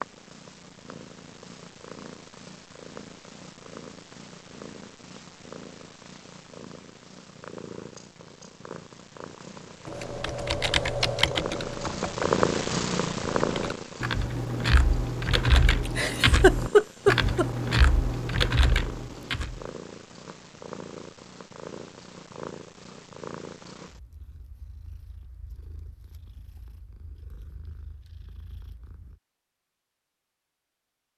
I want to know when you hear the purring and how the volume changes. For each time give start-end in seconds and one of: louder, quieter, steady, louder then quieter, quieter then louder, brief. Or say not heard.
0.0-29.2 louder then quieter.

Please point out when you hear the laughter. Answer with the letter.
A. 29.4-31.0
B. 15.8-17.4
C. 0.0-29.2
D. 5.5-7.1
B.